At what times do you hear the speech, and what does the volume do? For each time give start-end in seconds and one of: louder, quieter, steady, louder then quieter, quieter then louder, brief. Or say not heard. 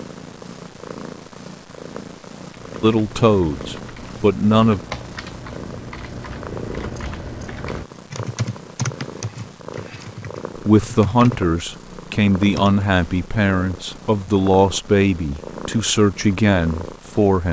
2.8-4.8 brief
10.6-17.4 steady.